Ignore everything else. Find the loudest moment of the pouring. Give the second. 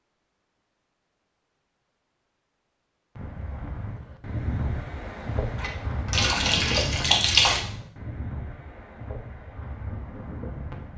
7 s.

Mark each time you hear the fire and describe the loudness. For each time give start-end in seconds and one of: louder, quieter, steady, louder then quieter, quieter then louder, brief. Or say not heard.
not heard.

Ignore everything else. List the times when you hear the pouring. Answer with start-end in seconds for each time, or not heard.
5.5-7.6.